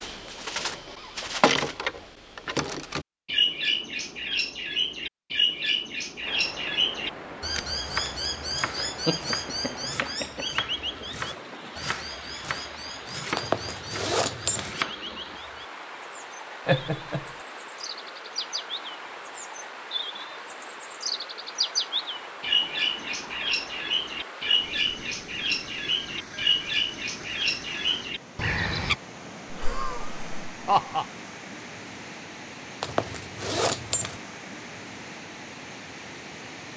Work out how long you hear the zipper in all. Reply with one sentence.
The zipper can be heard for 3 seconds in total.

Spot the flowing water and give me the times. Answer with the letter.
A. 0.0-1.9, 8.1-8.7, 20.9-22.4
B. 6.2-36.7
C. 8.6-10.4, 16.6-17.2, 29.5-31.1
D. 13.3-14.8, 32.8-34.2
B.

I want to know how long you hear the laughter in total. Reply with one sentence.
You can hear the laughter for 4 seconds altogether.